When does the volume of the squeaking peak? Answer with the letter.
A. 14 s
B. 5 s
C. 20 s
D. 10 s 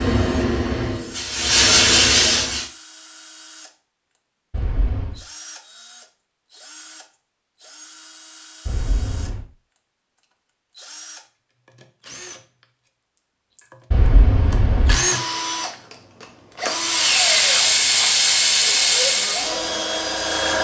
A.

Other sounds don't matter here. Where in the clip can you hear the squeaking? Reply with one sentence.
The squeaking can be heard from 4.5 to 5.2 s, from 8.7 to 9.4 s and from 13.9 to 14.9 s.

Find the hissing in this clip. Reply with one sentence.
You can hear the hissing from 0.0 to 2.6 s and from 16.6 to 20.6 s.